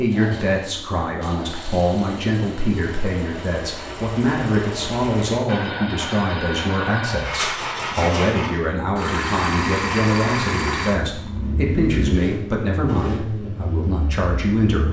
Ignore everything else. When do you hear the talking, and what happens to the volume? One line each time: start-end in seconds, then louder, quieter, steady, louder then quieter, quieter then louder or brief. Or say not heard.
0.0-14.8 steady.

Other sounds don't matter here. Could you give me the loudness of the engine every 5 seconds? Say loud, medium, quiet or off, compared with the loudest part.
medium, loud, loud.